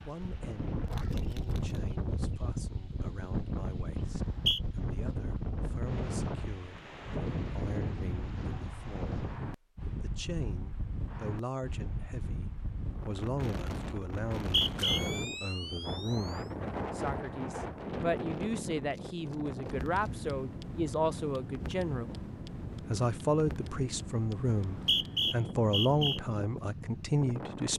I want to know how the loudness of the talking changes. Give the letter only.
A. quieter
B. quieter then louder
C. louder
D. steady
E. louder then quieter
C.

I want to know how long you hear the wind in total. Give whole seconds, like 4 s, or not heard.
28 s.